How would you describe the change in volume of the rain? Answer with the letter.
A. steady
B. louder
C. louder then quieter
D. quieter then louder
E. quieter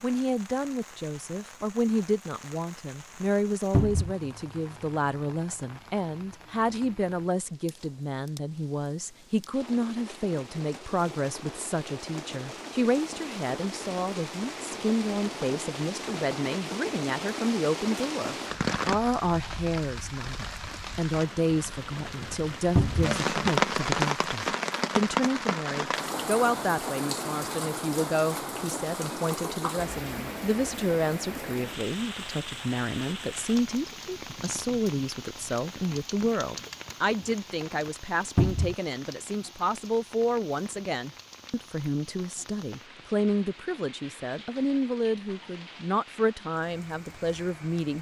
C.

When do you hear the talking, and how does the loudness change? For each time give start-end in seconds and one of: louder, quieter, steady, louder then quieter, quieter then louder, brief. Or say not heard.
0.0-47.9 steady.